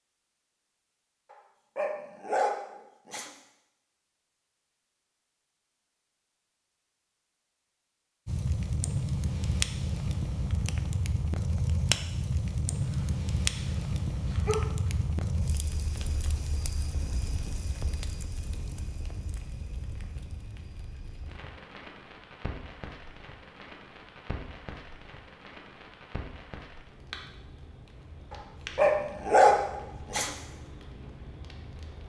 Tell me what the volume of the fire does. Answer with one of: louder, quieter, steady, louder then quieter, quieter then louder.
quieter.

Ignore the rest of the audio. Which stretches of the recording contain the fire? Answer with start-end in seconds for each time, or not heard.
8.2-32.0.